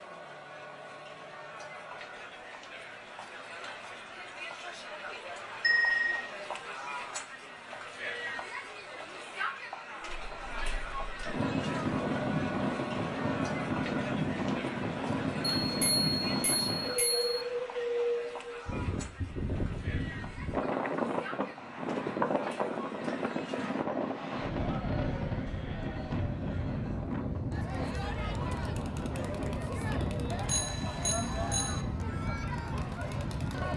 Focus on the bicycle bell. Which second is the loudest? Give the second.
6 s.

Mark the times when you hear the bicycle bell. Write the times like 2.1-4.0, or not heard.
5.6-6.2, 15.6-17.3, 30.4-31.9.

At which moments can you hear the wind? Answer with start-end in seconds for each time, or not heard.
10.0-33.7.